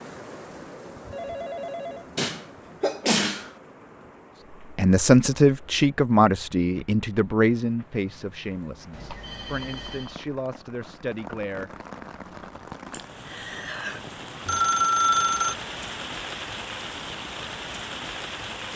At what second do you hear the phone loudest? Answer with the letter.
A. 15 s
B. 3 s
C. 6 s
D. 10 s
A.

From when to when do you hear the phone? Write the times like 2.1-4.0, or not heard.
1.1-2.0, 8.9-10.2, 14.4-15.6.